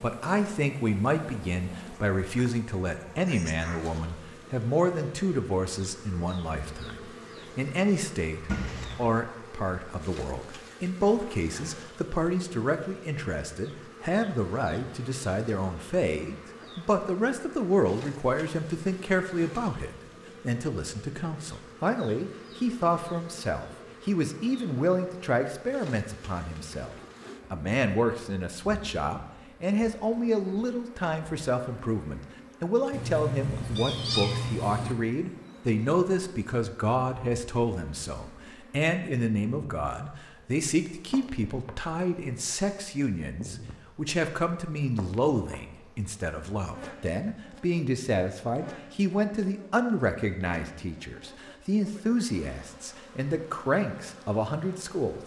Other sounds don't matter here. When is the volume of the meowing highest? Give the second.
34 s.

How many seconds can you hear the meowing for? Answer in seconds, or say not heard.
3 s.